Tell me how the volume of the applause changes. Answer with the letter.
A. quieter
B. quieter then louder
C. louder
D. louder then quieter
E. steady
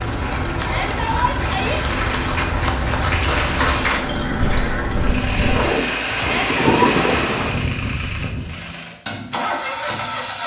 C.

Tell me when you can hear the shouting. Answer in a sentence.
You can hear the shouting from 0.6 to 1.8 s and from 6.2 to 7.0 s.